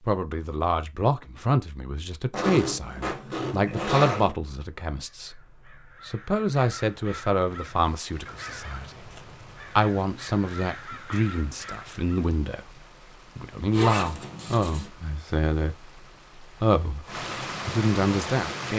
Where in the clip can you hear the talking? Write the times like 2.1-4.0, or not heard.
0.0-18.7.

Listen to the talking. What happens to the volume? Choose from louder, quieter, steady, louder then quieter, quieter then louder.
steady.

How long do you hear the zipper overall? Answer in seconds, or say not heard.
3 s.